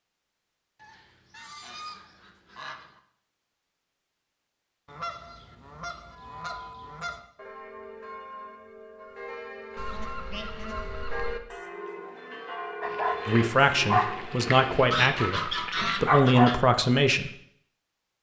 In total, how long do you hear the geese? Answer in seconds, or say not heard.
8 s.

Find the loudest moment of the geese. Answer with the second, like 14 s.
15 s.